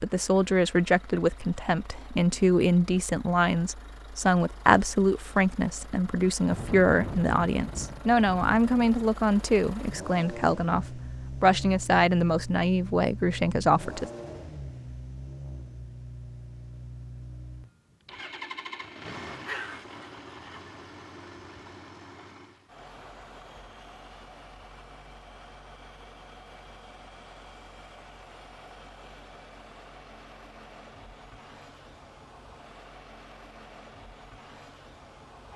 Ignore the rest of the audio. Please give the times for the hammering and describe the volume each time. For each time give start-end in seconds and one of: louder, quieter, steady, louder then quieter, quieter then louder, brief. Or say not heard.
not heard.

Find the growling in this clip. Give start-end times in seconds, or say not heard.
19.4-20.6.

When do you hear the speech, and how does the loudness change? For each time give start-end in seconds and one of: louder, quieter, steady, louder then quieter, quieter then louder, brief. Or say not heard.
0.0-14.1 steady.